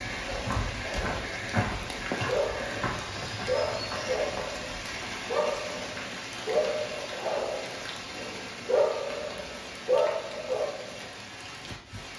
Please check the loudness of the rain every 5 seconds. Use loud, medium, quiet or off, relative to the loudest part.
loud, medium, medium.